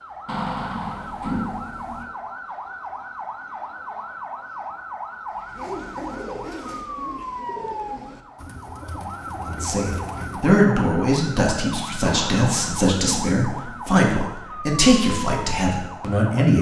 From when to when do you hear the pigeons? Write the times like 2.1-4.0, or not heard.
5.3-10.6.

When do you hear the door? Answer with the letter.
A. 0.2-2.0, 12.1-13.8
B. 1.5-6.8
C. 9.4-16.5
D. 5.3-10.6
A.